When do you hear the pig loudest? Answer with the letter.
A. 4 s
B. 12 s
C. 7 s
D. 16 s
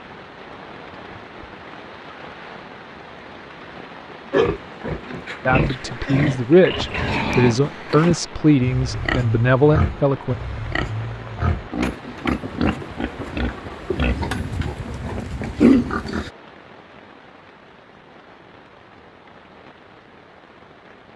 D.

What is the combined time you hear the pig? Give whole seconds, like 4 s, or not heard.
12 s.